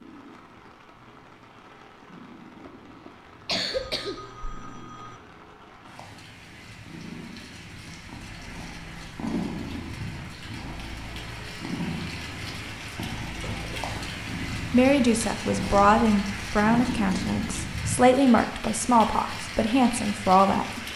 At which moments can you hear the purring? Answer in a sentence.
The purring can be heard from 0.0 to 17.8 s.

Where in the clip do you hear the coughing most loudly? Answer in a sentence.
The loudest moment of the coughing is at 4 seconds.